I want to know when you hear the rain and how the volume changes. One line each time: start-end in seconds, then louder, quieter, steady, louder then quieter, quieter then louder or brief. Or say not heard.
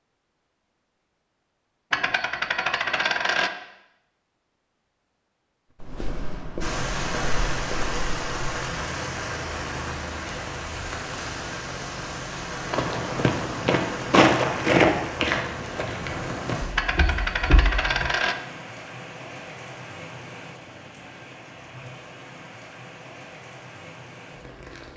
6.6-24.9 quieter.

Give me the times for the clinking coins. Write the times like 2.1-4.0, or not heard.
1.9-3.5, 16.8-18.4.